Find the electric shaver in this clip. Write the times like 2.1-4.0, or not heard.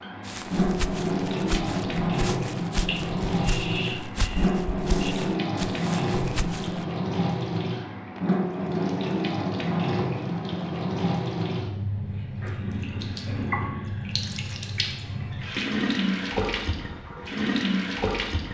not heard.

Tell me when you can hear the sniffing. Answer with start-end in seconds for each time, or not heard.
2.9-5.2.